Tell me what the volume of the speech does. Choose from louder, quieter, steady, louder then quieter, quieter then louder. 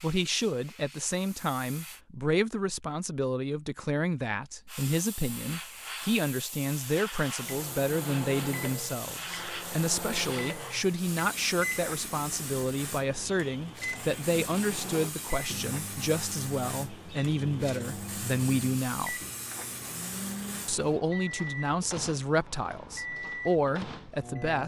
steady.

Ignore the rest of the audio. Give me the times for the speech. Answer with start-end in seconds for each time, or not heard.
0.0-19.1, 20.6-24.6.